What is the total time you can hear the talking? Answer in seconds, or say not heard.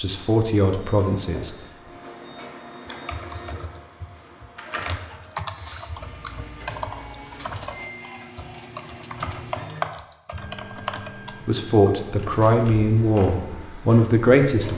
5 s.